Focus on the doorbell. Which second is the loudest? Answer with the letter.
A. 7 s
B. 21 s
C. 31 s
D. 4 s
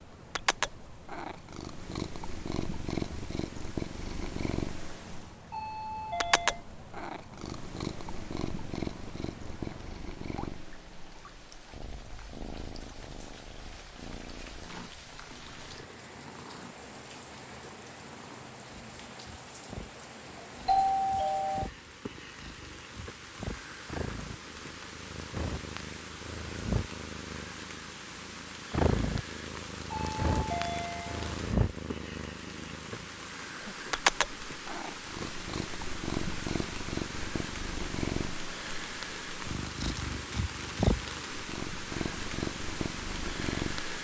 B.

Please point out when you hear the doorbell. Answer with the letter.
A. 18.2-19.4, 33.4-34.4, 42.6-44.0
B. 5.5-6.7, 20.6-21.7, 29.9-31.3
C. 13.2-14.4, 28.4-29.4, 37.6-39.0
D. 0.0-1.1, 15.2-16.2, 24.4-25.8
B.